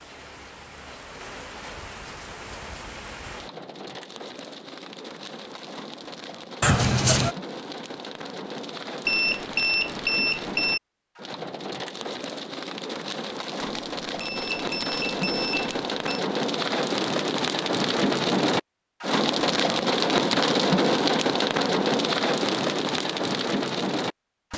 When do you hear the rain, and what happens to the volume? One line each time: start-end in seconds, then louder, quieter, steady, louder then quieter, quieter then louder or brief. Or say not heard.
0.0-24.5 louder.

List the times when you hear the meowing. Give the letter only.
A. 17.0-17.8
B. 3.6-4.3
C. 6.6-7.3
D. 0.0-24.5
C.